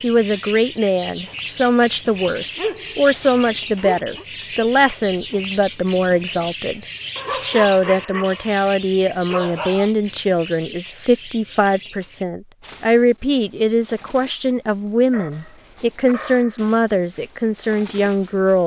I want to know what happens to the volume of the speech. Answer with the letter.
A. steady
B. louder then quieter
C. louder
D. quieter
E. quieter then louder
A.